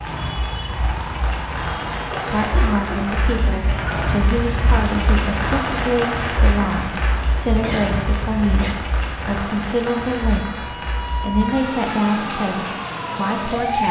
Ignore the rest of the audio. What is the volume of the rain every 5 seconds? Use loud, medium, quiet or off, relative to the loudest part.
loud, loud, medium.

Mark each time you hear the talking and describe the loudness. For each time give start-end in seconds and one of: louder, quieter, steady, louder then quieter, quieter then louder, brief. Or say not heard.
2.3-13.8 steady.